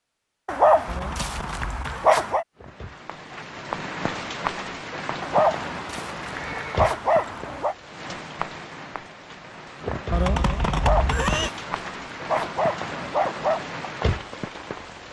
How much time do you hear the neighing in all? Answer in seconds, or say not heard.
3 s.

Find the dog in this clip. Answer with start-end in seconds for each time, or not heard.
0.5-2.5, 5.2-7.8, 10.7-13.6.